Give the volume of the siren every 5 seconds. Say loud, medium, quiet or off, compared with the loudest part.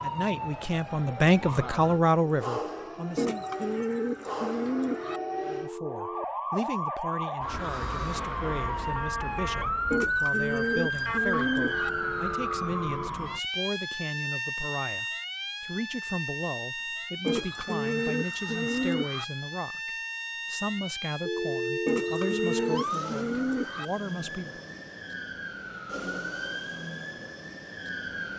medium, loud, loud, medium, medium, medium.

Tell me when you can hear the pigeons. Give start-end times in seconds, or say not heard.
3.1-5.2, 9.9-11.9, 17.2-19.2, 21.9-23.9.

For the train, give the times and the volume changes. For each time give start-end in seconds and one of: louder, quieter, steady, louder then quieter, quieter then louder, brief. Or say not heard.
not heard.